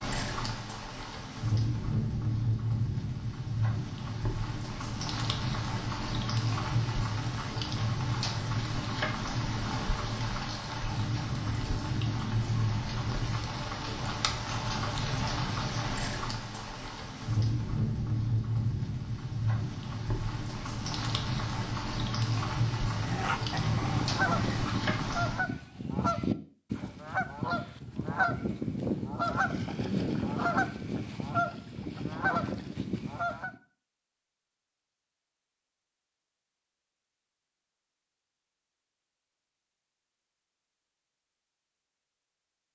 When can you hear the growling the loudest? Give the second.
23 s.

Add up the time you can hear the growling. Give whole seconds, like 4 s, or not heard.
2 s.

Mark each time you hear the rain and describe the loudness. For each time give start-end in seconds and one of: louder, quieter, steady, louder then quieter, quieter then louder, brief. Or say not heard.
0.0-25.5 steady.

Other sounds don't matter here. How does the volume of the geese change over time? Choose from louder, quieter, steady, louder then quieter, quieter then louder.
steady.